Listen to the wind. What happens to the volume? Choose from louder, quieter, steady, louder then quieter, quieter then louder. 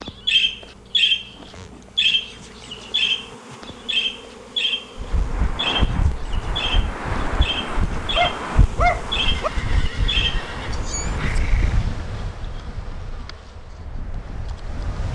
quieter.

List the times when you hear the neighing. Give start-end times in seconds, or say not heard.
9.2-11.8.